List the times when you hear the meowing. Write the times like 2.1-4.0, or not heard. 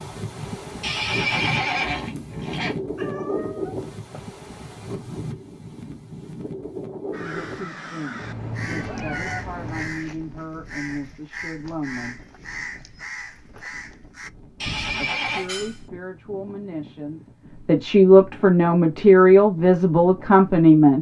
3.0-4.2, 8.2-10.1, 14.7-15.9.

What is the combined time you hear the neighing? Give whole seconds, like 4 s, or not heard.
3 s.